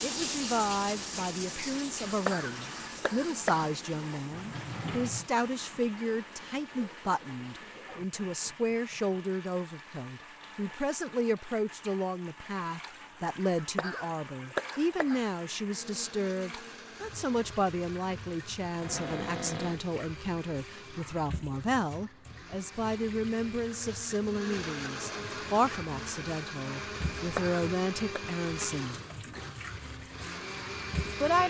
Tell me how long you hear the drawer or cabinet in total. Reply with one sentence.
The drawer or cabinet can be heard for 2 seconds in total.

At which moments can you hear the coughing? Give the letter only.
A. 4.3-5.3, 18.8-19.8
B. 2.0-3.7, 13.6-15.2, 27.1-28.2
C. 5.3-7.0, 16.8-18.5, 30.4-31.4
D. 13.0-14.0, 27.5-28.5
B.